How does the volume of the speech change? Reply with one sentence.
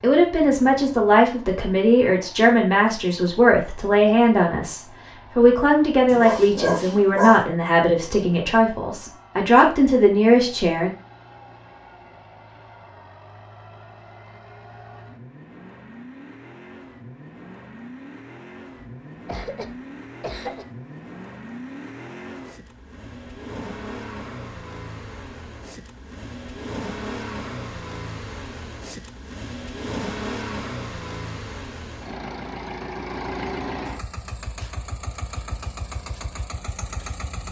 The loudness of the speech stays about the same.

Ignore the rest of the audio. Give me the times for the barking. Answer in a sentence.
The barking can be heard from 6.0 to 7.5 s.